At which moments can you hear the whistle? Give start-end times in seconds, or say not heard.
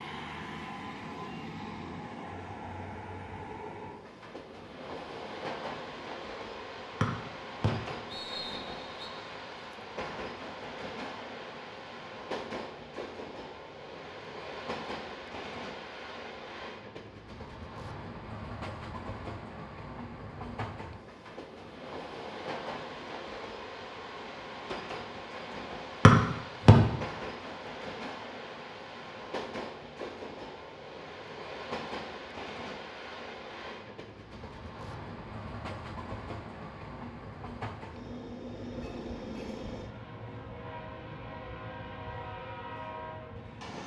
7.0-9.1, 26.1-26.8.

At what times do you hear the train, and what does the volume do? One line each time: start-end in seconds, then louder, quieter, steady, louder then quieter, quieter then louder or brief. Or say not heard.
0.0-43.8 steady.